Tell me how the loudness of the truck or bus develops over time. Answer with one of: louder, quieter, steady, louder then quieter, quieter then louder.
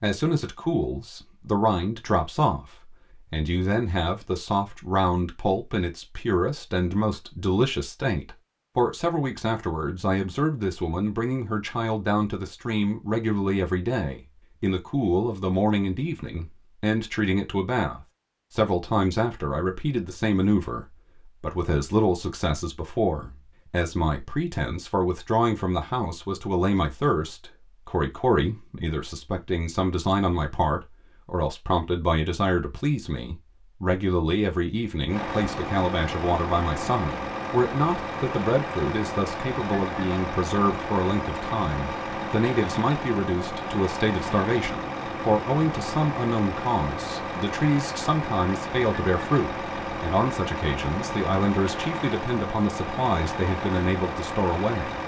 steady.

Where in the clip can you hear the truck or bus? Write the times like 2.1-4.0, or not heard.
35.0-55.0.